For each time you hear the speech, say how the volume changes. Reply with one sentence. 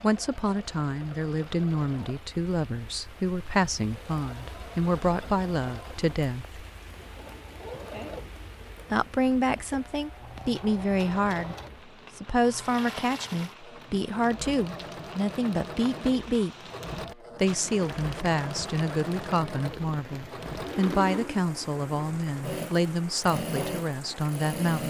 The speech can be heard from 0.0 to 6.6 s, at a steady volume; briefly from 8.9 to 11.6 s; and from 12.2 to 24.8 s, at a steady volume.